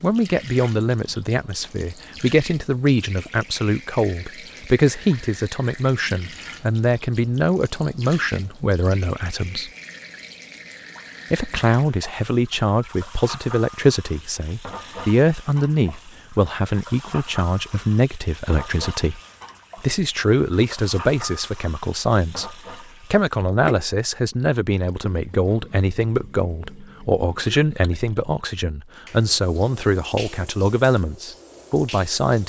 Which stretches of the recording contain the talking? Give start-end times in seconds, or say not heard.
0.0-9.7, 11.3-19.2, 19.8-32.4.